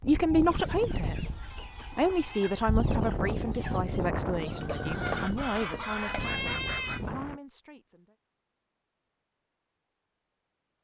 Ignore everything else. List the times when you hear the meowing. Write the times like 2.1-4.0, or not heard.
1.5-2.6, 5.7-7.0.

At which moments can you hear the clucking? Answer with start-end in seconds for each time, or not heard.
0.5-7.3.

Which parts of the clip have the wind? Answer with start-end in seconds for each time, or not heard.
0.0-7.4.